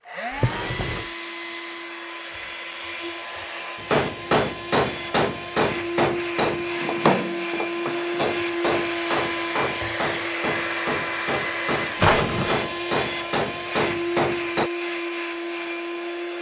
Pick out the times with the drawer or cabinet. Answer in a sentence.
You can hear the drawer or cabinet from 0.3 to 1.1 s, from 6.7 to 8.3 s and from 11.9 to 12.6 s.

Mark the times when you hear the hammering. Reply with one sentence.
The hammering can be heard from 3.8 to 14.7 s.